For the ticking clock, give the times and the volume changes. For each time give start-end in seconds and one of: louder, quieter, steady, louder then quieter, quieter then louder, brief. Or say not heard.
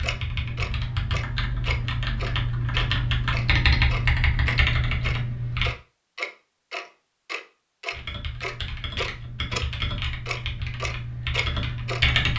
0.0-9.7 steady
10.2-12.0 brief.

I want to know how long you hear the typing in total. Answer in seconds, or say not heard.
10 s.